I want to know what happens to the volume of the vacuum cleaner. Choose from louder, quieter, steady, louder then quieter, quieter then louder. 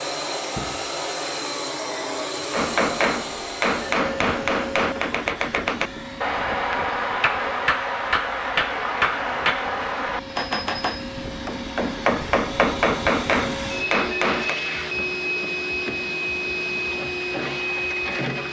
quieter then louder.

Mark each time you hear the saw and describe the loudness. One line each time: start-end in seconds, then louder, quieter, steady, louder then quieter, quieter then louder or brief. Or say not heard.
not heard.